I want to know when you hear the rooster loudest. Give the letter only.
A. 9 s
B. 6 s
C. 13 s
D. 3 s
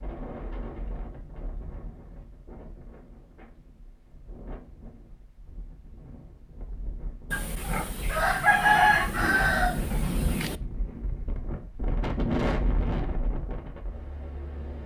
A.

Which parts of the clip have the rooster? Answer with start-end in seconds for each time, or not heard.
7.3-10.6.